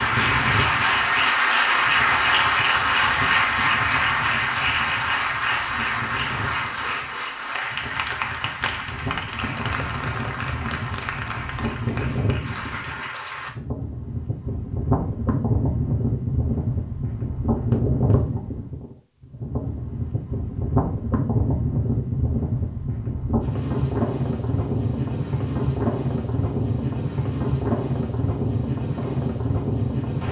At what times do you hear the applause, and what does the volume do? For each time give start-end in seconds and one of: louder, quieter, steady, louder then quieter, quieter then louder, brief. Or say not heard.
0.0-13.6 quieter.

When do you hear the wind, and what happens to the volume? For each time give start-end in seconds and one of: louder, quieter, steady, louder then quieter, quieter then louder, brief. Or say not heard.
0.0-30.2 louder.